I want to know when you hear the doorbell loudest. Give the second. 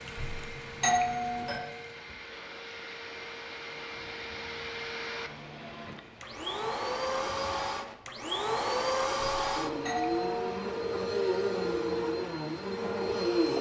1 s.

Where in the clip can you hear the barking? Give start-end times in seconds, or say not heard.
not heard.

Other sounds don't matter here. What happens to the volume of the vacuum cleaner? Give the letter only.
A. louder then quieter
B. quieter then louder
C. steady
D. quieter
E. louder
E.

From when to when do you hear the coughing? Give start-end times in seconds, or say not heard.
not heard.